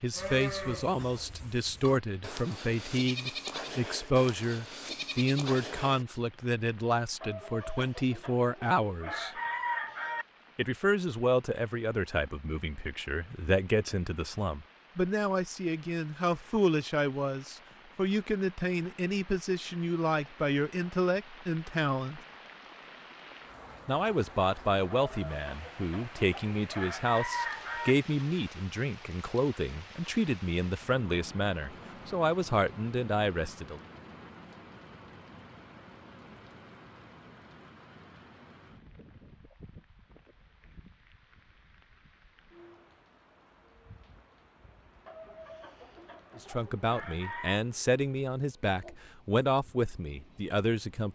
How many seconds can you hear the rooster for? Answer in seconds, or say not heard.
9 s.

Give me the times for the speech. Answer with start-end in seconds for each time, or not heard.
0.0-9.3, 10.6-22.2, 23.9-33.8, 46.4-51.1.